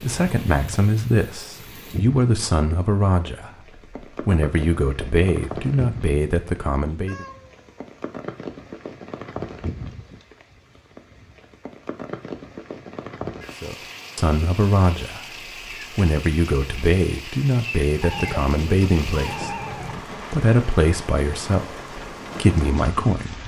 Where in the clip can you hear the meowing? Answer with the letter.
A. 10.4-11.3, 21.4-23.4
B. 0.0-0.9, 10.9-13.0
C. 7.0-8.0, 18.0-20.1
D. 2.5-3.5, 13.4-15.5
C.